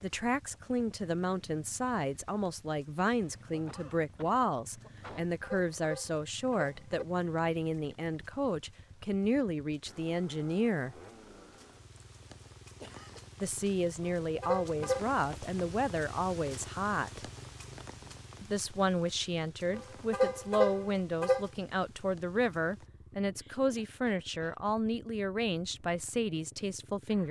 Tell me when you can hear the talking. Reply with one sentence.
You can hear the talking from 0.0 to 10.9 s, from 13.4 to 17.2 s and from 18.4 to 27.2 s.